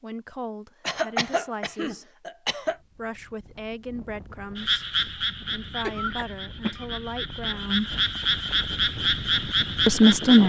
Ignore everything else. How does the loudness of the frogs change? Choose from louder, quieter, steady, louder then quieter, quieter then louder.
quieter then louder.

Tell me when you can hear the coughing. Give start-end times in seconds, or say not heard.
0.8-2.8, 5.8-6.8.